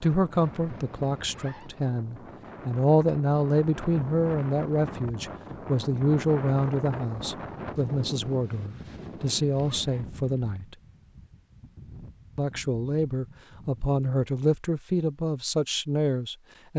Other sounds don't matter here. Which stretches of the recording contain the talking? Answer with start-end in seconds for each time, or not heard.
0.0-10.8, 12.3-16.7.